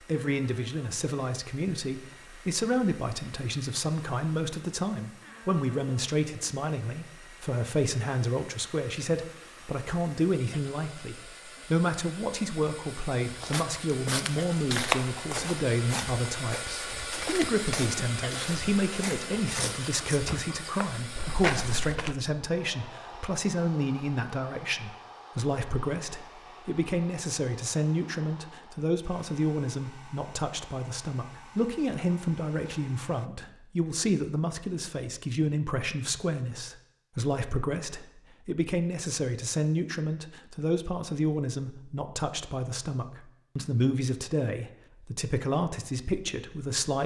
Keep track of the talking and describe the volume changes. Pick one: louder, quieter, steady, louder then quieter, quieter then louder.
steady.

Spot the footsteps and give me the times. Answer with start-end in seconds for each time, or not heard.
13.2-22.1.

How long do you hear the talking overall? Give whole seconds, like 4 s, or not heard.
47 s.